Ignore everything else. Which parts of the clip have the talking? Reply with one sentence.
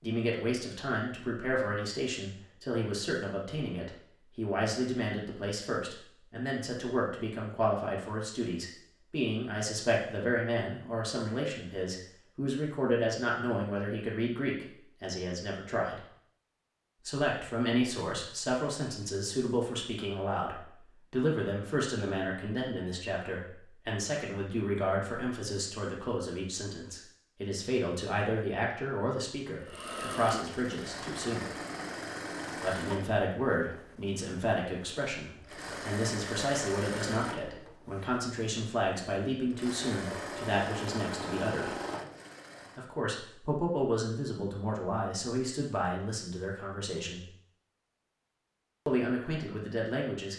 The talking can be heard from 0.0 to 16.0 s, from 17.1 to 31.5 s, from 32.6 to 41.7 s, from 42.8 to 47.2 s and from 48.9 to 50.3 s.